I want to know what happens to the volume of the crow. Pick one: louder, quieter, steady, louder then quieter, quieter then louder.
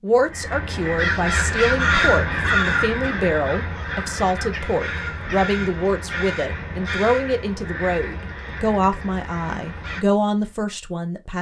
quieter.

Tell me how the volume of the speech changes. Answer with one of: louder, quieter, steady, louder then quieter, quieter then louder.
steady.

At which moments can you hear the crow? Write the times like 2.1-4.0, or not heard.
0.1-10.5.